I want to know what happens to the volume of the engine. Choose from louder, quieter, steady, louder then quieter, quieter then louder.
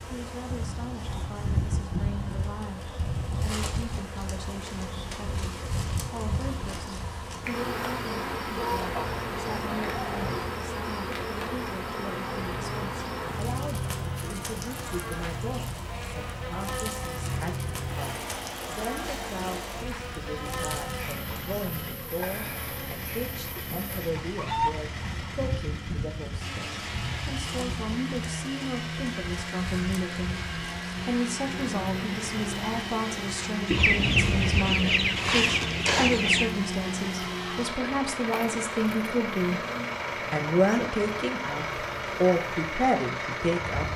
louder.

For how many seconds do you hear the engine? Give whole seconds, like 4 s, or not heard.
44 s.